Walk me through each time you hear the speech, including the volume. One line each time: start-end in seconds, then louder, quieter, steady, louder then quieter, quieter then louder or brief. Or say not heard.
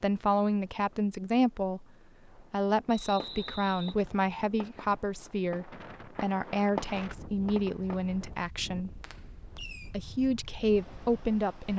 0.0-8.9 steady
9.9-11.7 brief.